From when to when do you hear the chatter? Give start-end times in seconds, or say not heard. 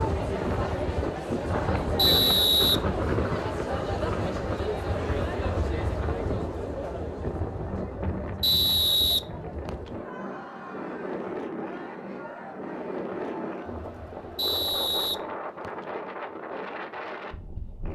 0.0-15.1.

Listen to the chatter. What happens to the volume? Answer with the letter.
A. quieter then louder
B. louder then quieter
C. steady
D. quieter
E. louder
D.